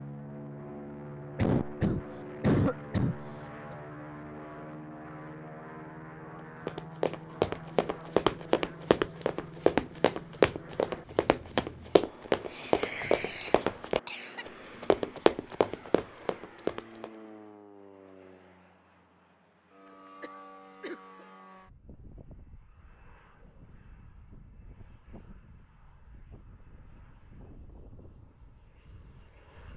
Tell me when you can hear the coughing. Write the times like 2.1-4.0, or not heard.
1.4-3.8, 12.5-14.4, 19.9-21.2.